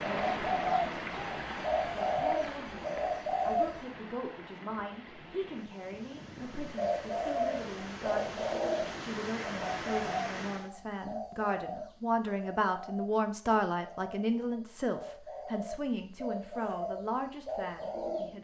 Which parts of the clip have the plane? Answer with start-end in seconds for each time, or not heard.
not heard.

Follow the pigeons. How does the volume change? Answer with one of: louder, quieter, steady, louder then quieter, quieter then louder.
quieter then louder.